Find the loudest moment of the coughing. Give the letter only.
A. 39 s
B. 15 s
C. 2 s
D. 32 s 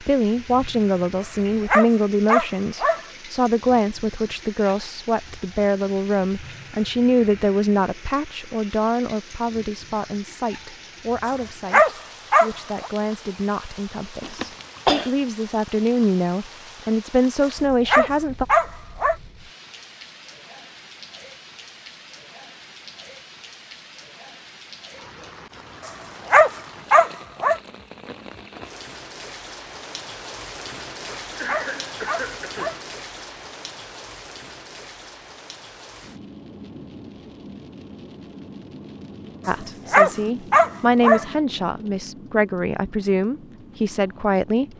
B.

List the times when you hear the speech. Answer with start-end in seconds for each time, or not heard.
0.0-18.4, 39.5-44.6.